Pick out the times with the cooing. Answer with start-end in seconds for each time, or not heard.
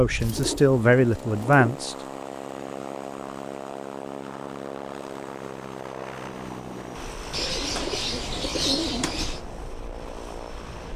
0.1-1.7, 7.3-9.4.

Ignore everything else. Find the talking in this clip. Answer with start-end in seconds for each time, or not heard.
0.0-1.9.